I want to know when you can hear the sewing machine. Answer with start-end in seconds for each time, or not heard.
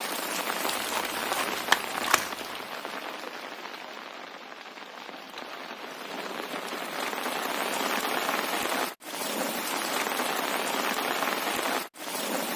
not heard.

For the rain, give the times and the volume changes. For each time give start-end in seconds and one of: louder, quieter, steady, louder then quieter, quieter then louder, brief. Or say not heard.
0.0-12.5 quieter then louder.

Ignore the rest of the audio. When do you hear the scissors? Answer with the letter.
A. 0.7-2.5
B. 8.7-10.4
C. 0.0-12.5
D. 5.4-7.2
A.